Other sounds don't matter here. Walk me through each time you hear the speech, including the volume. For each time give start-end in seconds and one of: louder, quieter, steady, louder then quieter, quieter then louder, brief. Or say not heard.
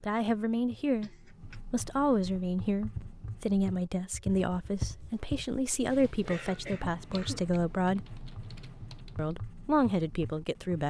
0.0-1.1 brief
1.7-8.1 steady
9.2-10.8 brief.